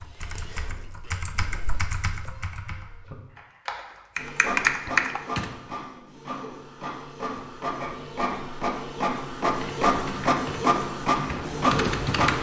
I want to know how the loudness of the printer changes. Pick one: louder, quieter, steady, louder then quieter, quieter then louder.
louder.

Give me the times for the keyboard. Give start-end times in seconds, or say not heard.
0.0-5.5, 9.4-12.3.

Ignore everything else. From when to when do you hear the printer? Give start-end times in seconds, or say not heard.
4.2-12.3.